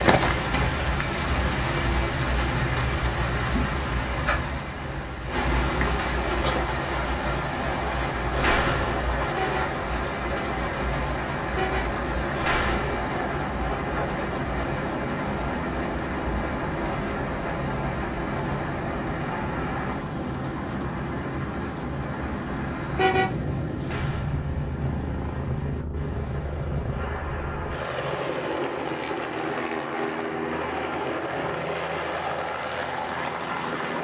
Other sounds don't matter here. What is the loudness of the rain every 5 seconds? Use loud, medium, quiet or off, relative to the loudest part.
loud, loud, loud, medium, medium, medium, medium.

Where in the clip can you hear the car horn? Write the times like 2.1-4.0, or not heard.
9.3-9.8, 11.5-11.9, 22.9-23.4.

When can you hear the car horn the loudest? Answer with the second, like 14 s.
23 s.